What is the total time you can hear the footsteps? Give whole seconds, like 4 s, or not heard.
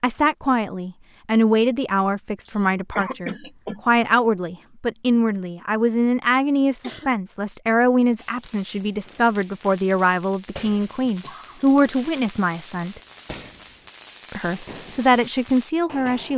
not heard.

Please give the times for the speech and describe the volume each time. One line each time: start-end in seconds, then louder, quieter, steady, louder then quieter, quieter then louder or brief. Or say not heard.
0.0-13.0 steady
14.3-16.3 brief.